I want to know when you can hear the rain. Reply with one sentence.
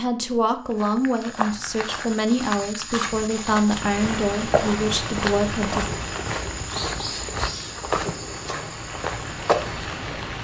You can hear the rain from 3.8 to 10.4 s.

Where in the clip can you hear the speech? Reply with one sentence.
The speech can be heard from 0.0 to 5.9 s.